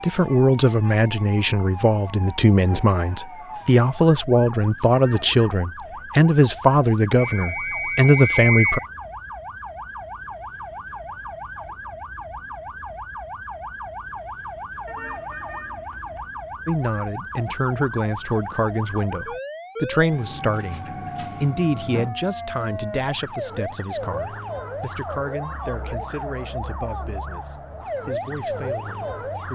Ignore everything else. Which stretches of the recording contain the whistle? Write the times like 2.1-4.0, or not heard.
7.2-8.8.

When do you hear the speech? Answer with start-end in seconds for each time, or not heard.
0.0-8.8, 16.6-29.5.